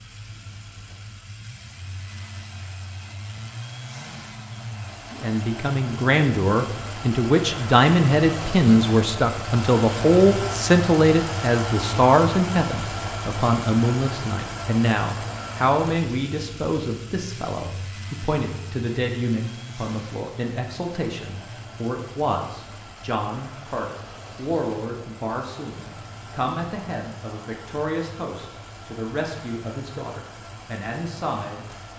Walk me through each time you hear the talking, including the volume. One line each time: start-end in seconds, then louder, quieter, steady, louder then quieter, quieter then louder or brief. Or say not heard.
5.1-31.6 quieter.